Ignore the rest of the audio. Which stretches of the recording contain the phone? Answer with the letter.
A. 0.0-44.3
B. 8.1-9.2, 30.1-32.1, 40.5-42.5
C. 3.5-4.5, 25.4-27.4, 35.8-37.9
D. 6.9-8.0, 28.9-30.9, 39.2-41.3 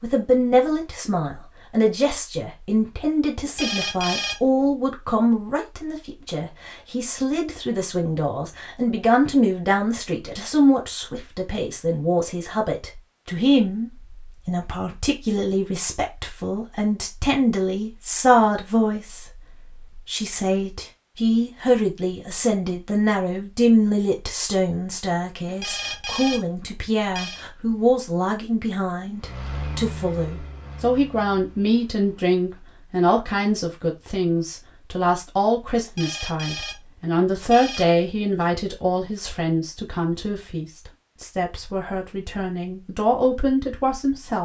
C.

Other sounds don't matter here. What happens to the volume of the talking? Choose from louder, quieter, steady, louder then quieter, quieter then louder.
steady.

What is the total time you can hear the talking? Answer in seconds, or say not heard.
44 s.